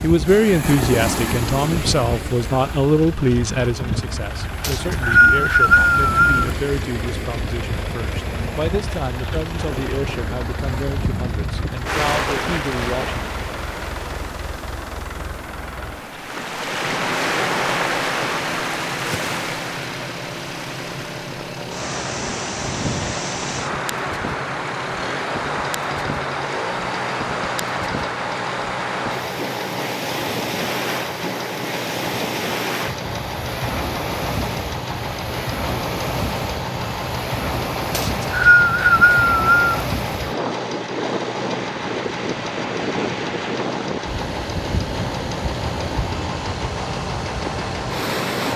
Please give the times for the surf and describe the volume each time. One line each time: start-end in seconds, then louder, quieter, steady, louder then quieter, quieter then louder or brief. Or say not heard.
0.0-48.5 steady.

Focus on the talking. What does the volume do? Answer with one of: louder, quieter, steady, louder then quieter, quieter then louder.
quieter.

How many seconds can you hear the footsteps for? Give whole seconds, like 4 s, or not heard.
not heard.